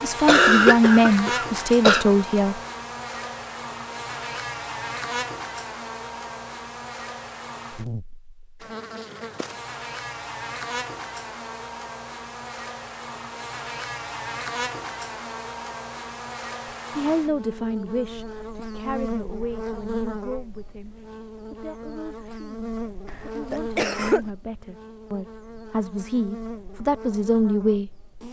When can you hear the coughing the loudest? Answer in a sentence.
The loudest moment of the coughing is at 1 second.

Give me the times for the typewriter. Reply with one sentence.
You can't hear the typewriter here.